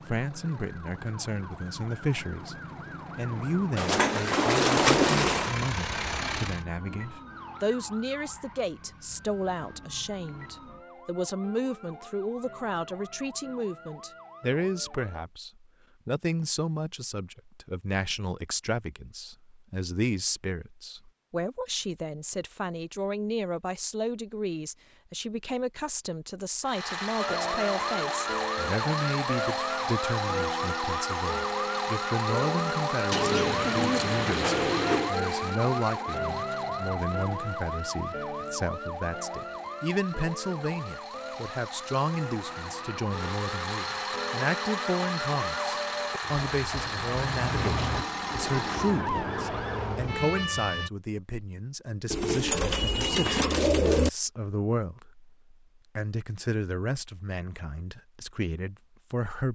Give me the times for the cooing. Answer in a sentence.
You can hear the cooing from 3.8 to 5.5 s, from 33.1 to 35.1 s and from 52.1 to 54.1 s.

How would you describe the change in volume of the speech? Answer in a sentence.
The volume of the speech stays about the same.